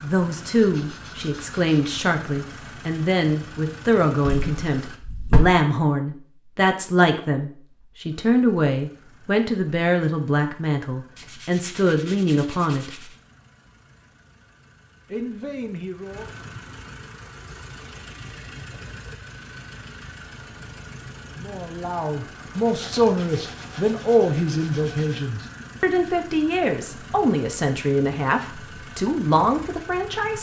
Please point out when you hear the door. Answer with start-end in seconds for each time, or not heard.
4.2-5.4.